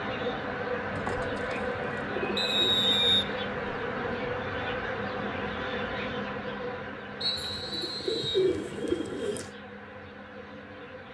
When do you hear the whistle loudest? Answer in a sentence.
The loudest moment of the whistle is at 3 seconds.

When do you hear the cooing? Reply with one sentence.
The cooing can be heard from 0.9 to 2.5 s and from 7.3 to 9.5 s.